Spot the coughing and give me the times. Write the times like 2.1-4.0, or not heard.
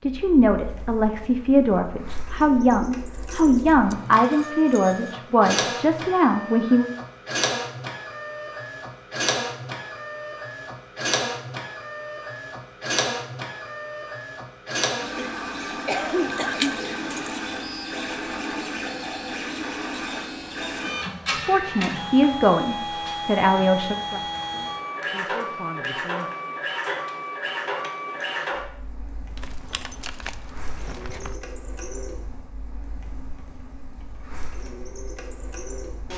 15.2-16.9.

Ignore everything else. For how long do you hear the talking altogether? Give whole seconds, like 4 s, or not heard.
12 s.